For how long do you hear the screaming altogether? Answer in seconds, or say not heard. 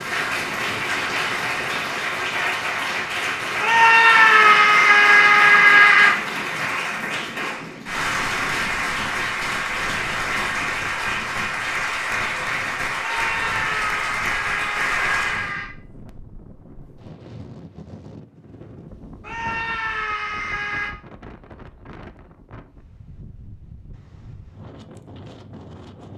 7 s.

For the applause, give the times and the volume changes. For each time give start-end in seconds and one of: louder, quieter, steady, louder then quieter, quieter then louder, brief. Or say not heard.
0.0-15.6 steady.